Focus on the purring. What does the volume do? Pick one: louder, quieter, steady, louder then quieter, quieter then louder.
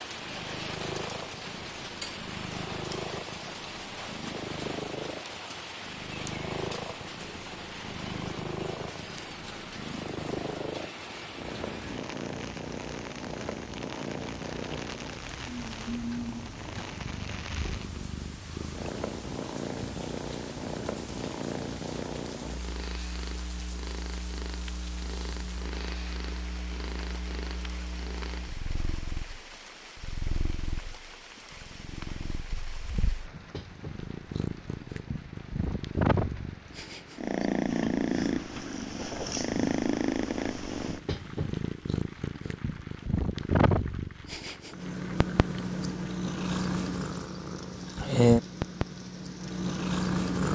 louder.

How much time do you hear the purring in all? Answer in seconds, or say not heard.
50 s.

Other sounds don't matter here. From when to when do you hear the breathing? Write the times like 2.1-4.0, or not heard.
not heard.